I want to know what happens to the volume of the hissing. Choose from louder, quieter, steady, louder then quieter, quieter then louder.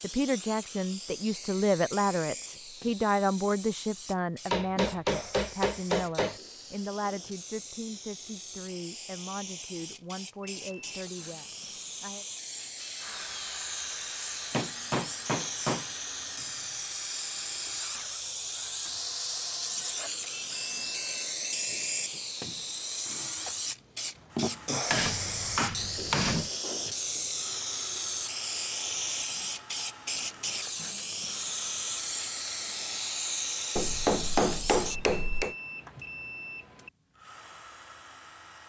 louder.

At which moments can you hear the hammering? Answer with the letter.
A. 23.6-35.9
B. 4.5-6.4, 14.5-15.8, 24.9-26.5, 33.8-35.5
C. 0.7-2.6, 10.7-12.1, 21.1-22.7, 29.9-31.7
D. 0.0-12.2
B.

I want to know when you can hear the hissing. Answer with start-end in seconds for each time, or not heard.
0.0-35.0.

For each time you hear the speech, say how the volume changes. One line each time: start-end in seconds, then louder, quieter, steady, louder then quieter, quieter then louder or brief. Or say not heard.
0.0-12.2 quieter.